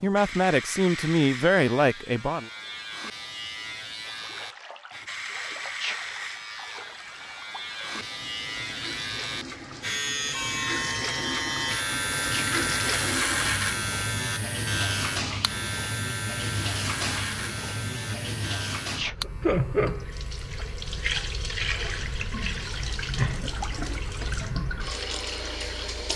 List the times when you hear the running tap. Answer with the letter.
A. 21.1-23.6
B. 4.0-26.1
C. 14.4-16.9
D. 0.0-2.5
B.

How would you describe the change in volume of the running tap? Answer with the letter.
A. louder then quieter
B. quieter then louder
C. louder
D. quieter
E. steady
C.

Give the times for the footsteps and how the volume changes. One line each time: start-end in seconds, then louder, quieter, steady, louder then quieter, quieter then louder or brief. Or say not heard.
not heard.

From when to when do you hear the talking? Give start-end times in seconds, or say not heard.
0.0-2.5.